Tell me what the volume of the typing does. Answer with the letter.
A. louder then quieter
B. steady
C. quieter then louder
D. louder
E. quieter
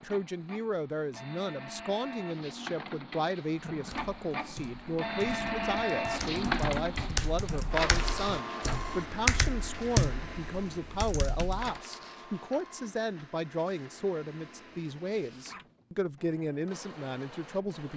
D.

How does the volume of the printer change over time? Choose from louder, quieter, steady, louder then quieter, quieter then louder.
louder then quieter.